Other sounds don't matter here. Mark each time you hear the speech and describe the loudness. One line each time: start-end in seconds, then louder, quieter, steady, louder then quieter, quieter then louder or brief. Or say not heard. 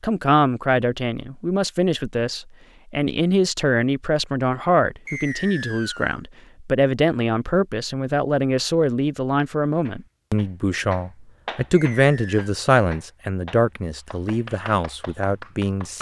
0.0-15.9 steady.